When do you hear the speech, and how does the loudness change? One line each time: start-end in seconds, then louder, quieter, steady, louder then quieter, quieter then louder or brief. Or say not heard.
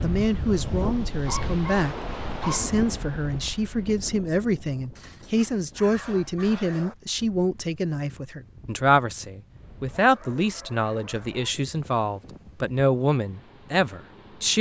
0.0-14.5 steady.